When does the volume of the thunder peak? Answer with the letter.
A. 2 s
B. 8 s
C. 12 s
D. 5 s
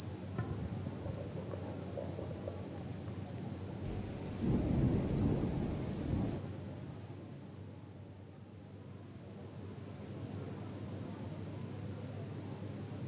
D.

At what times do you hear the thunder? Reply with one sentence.
The thunder can be heard from 3.9 to 6.4 s.